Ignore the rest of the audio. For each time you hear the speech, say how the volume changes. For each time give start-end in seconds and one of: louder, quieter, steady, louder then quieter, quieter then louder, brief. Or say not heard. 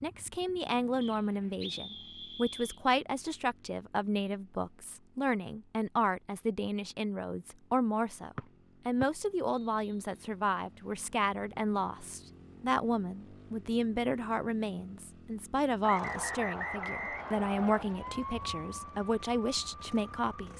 0.0-20.5 steady.